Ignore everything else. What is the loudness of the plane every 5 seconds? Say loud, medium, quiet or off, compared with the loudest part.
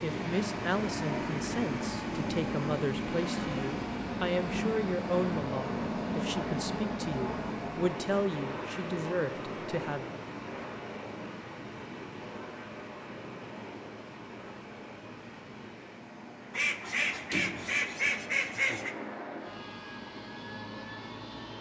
loud, loud, medium, medium, medium.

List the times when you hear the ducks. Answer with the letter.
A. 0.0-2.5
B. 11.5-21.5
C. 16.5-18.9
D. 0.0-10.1
C.